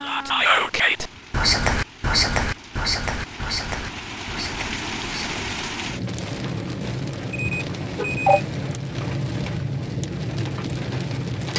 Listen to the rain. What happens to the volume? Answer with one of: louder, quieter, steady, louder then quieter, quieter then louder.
louder.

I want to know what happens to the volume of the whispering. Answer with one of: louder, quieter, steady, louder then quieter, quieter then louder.
quieter.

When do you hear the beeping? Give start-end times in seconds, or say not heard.
7.3-8.4.